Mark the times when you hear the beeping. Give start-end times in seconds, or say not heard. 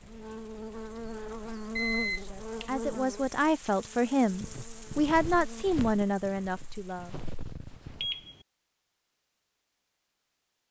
1.3-2.7, 8.0-8.4.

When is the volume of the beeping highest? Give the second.
2 s.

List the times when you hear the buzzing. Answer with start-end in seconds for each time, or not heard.
0.0-5.7.